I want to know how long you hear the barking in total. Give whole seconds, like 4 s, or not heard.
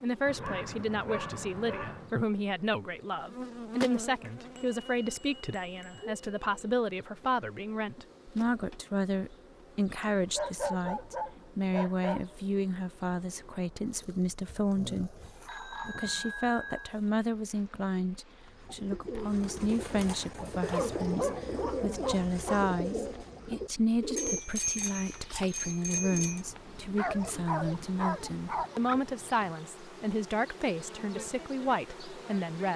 8 s.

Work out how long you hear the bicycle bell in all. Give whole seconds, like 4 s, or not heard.
6 s.